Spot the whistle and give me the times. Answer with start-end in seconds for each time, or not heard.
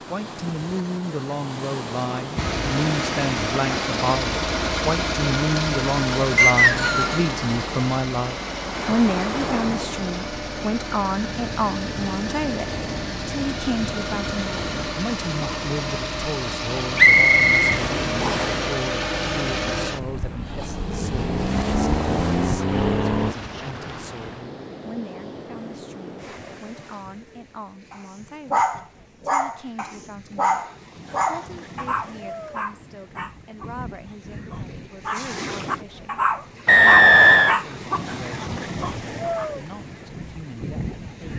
6.3-7.2, 16.9-18.5, 36.6-37.5.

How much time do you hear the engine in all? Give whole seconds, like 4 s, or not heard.
21 s.